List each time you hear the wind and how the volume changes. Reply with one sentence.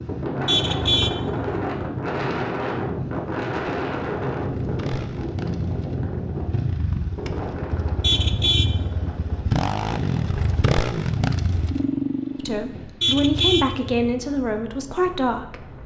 The wind can be heard from 0.0 to 15.8 s, getting quieter.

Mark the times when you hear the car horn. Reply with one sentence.
You can hear the car horn from 0.5 to 1.6 s, from 8.0 to 8.8 s and from 13.0 to 14.2 s.